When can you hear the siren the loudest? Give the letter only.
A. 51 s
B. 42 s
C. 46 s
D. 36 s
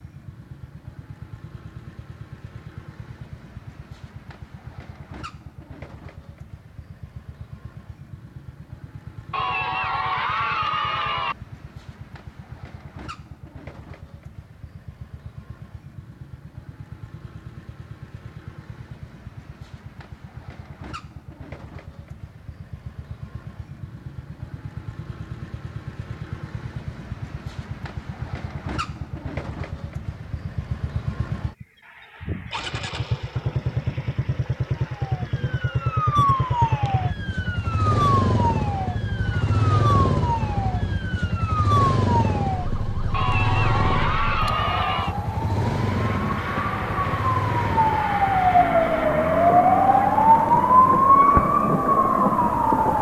A.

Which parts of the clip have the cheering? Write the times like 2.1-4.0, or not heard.
9.3-11.3, 43.1-45.1.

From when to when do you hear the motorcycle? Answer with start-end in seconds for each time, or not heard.
0.0-52.9.